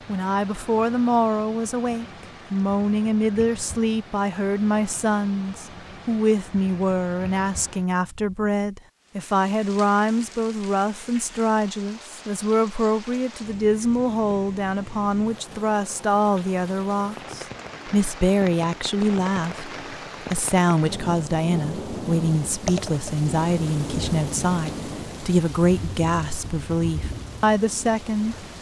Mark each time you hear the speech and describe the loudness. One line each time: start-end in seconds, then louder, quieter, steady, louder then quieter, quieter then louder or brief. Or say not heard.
0.1-28.4 steady.